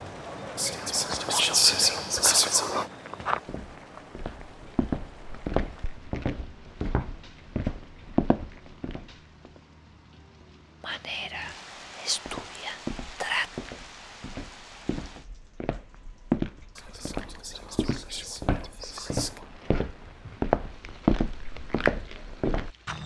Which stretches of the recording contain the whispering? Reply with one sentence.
You can hear the whispering from 0.6 to 2.9 s, from 10.8 to 13.5 s and from 16.8 to 19.4 s.